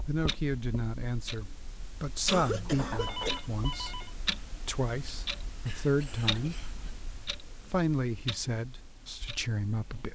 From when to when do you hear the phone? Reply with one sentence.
You can hear the phone from 3.0 to 4.2 s.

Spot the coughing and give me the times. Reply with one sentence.
The coughing can be heard from 2.2 to 3.4 s and from 5.7 to 7.0 s.